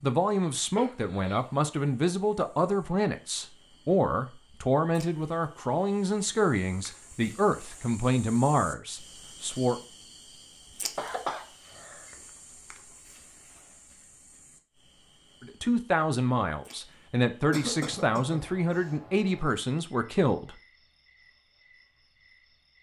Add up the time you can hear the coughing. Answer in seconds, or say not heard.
3 s.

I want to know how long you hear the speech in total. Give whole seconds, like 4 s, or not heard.
15 s.